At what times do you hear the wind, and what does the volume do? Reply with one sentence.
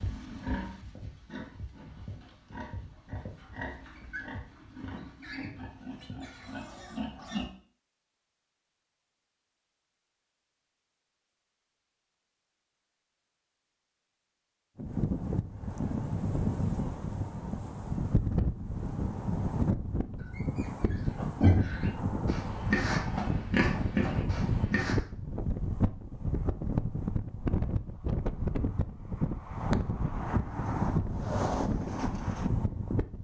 You can hear the wind from 14.8 to 33.2 s, at a steady volume.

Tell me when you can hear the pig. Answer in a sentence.
The pig can be heard from 0.0 to 7.5 s and from 20.2 to 24.9 s.